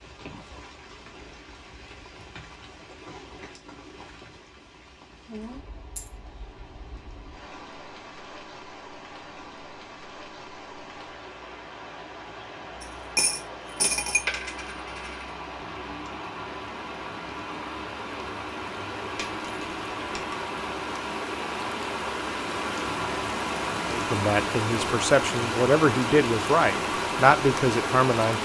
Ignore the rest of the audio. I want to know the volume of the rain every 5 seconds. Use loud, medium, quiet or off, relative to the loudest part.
quiet, quiet, quiet, medium, loud, loud.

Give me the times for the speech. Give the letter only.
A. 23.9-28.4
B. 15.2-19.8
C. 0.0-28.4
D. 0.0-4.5
A.